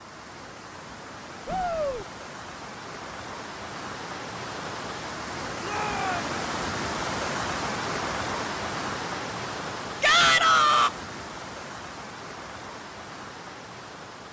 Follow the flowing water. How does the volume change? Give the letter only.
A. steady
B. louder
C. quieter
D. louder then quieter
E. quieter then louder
D.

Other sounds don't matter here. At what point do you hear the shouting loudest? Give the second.
10 s.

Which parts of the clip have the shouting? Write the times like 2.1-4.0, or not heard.
1.4-2.0, 5.6-6.3, 10.0-10.9.